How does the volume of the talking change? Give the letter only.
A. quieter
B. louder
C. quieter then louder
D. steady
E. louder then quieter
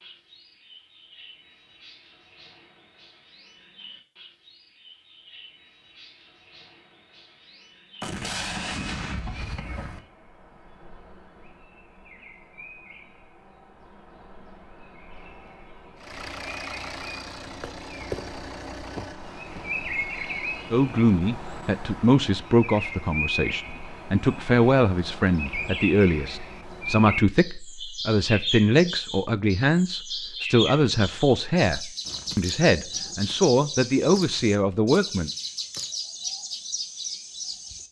D.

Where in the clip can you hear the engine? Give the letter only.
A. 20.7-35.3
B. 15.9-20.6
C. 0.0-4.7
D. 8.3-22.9
B.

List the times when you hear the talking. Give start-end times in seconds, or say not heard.
20.7-35.3.